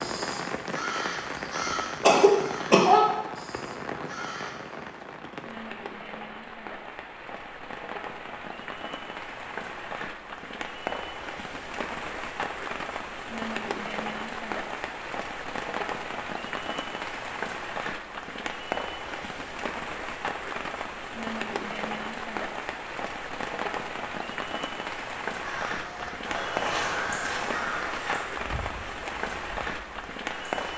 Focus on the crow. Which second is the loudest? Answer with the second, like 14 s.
3 s.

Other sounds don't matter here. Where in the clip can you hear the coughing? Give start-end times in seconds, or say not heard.
2.0-2.9.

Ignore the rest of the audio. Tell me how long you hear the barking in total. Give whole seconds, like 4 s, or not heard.
not heard.